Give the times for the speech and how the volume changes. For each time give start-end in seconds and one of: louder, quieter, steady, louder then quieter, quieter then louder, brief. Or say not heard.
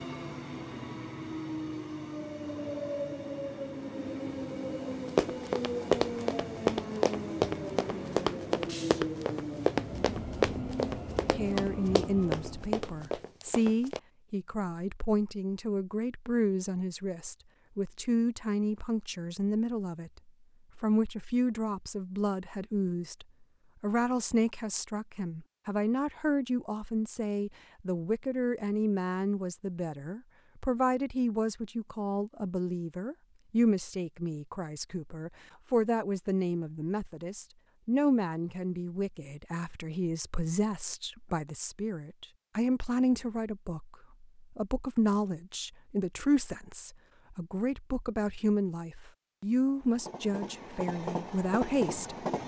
11.3-52.2 steady.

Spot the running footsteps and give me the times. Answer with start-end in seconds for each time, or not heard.
5.0-14.0.